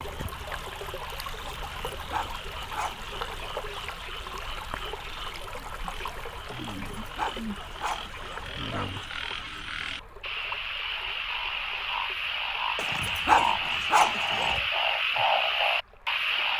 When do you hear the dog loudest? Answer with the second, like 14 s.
13 s.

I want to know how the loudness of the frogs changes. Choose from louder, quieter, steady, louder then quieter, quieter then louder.
louder.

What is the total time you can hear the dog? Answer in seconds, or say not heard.
6 s.